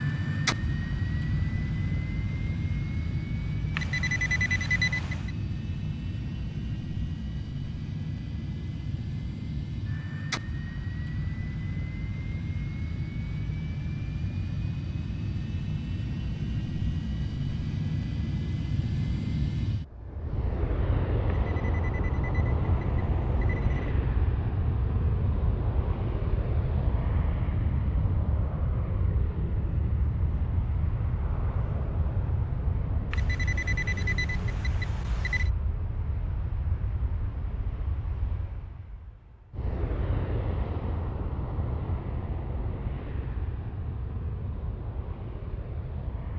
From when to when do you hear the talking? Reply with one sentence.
The talking can't be heard in this clip.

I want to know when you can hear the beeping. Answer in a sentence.
You can hear the beeping from 3.8 to 5.3 s, from 21.4 to 24.0 s and from 33.1 to 35.5 s.